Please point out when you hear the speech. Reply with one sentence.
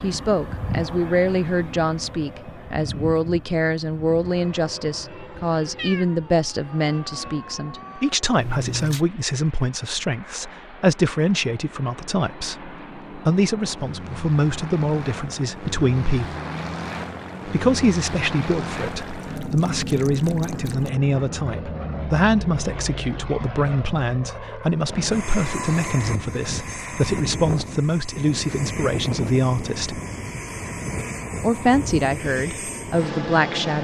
The speech can be heard from 0.0 to 16.4 s, from 17.4 to 30.0 s and from 31.4 to 33.7 s.